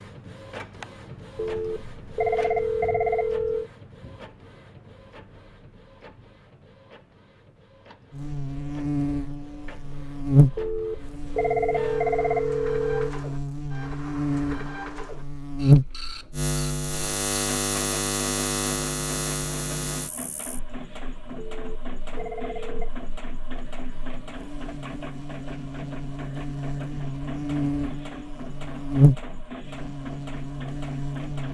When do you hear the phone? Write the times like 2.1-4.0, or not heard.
1.4-3.7, 10.6-13.2, 21.4-22.9.